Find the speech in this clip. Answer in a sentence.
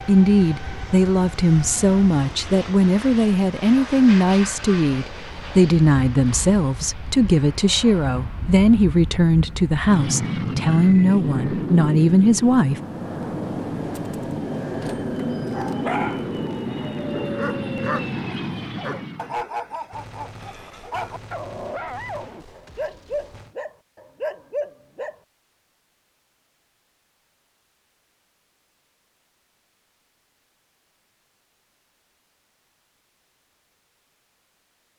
The speech can be heard from 0.1 to 12.8 s.